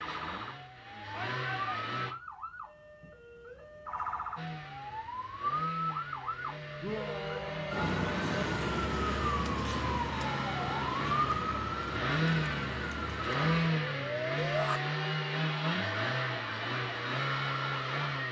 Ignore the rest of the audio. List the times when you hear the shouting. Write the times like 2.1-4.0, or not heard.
1.1-2.1, 6.8-7.9, 14.3-14.8.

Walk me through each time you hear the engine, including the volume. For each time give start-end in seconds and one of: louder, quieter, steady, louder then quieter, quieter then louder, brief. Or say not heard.
0.0-2.1 brief
4.3-18.2 louder.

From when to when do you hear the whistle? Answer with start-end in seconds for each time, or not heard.
not heard.